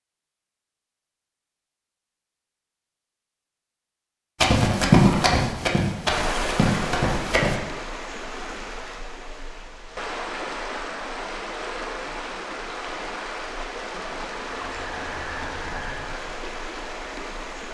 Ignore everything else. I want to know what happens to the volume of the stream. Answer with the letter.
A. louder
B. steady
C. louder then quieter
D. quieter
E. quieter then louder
B.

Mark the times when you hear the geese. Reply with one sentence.
You can hear the geese from 14.4 to 16.2 s.